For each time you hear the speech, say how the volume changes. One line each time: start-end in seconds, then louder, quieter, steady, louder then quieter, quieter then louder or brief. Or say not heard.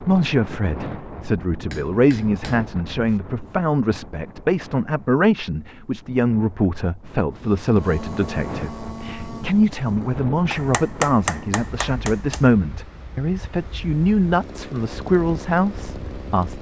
0.0-16.5 steady.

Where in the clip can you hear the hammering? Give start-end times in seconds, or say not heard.
1.7-3.2, 10.5-12.4.